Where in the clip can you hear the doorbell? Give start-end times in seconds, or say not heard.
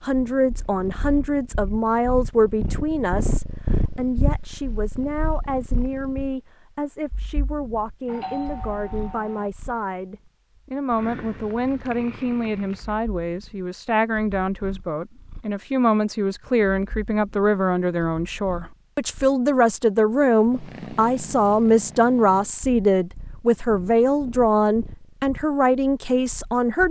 8.1-9.5.